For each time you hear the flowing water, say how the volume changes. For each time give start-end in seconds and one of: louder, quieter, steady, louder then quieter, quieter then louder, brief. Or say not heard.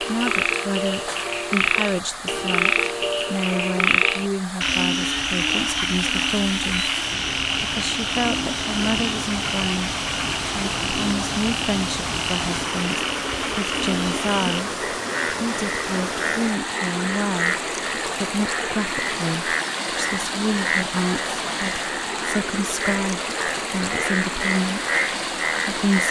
0.0-26.0 louder.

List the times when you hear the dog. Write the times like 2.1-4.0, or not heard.
not heard.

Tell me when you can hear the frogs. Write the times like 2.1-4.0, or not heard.
0.0-26.0.